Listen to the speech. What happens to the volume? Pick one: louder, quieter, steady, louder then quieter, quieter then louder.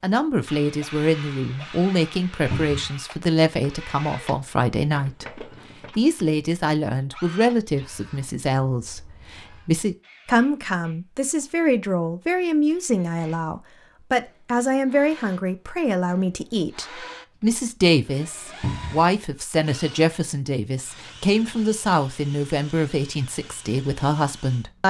steady.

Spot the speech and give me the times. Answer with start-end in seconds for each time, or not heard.
0.0-24.8.